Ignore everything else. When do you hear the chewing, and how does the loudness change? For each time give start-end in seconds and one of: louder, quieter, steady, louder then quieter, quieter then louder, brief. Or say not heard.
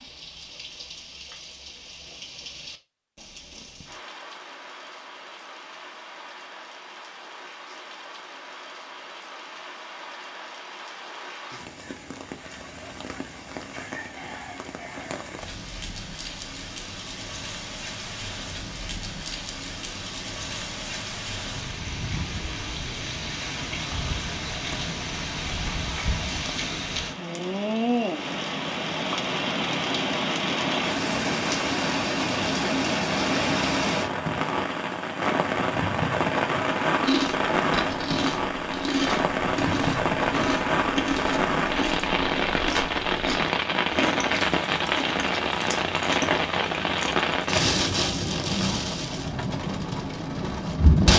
37.0-47.6 steady.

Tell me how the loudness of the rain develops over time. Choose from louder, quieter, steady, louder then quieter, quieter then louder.
louder.